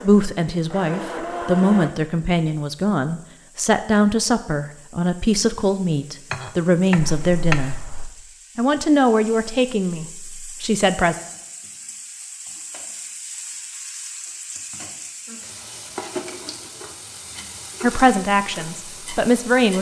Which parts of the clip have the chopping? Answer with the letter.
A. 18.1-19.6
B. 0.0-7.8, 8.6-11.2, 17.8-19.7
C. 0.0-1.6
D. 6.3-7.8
D.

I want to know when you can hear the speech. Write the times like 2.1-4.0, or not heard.
0.0-7.8, 8.6-11.2, 17.8-19.7.